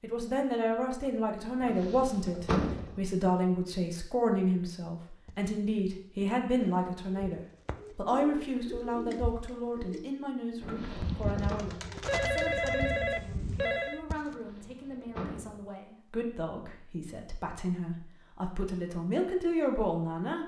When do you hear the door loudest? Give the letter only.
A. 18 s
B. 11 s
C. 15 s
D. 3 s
D.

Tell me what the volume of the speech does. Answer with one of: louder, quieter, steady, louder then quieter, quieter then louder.
quieter then louder.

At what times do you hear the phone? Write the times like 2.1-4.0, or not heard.
12.1-14.1.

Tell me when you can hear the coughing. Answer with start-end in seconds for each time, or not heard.
not heard.